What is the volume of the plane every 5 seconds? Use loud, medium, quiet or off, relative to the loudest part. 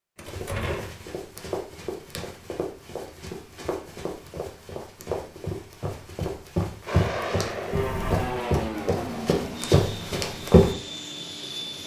off, loud, medium.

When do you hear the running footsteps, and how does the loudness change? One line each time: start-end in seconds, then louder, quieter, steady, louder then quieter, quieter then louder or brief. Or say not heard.
0.2-10.8 louder.